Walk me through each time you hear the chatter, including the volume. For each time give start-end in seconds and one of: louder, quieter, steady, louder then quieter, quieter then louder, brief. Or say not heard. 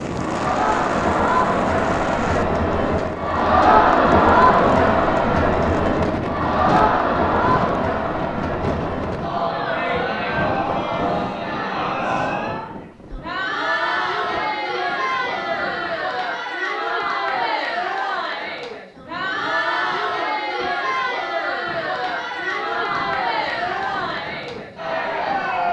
0.0-25.6 quieter.